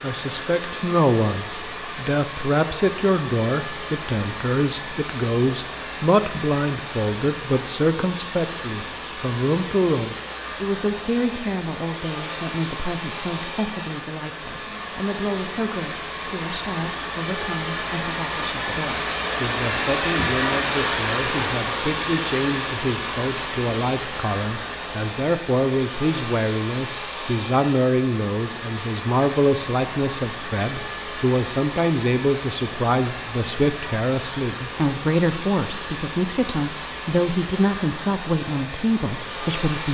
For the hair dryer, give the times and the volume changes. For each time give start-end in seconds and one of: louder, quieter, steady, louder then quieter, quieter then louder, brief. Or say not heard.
0.0-39.8 louder then quieter.